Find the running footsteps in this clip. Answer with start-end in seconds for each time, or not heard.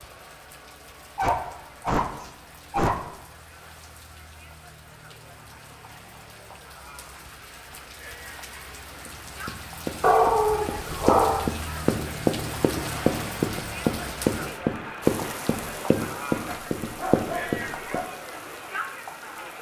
9.1-18.0.